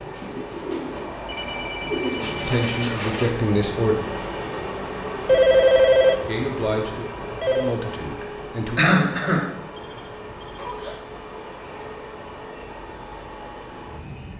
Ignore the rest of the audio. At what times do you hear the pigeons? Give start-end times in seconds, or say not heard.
0.0-3.3.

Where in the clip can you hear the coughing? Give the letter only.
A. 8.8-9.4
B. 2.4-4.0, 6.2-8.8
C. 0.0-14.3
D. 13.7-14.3
A.